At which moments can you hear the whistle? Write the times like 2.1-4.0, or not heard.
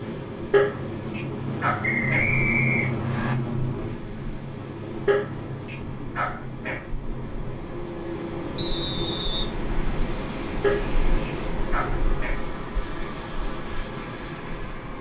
1.8-3.4, 8.6-9.5.